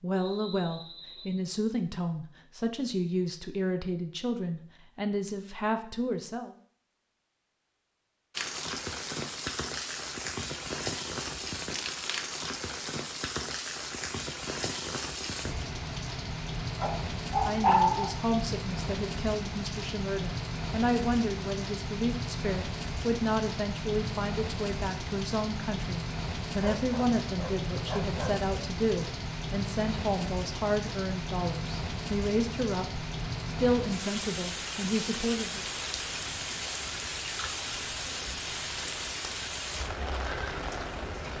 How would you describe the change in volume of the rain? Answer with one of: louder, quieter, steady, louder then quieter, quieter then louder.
steady.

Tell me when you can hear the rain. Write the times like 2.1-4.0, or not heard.
8.3-41.3.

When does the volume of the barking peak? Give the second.
18 s.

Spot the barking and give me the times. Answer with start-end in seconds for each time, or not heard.
16.8-18.1, 26.6-28.4.